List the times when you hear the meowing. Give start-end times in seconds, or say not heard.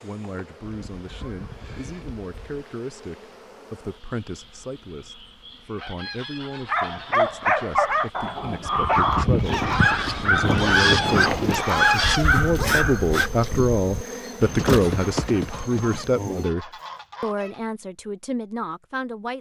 not heard.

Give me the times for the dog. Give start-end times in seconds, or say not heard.
6.7-13.3.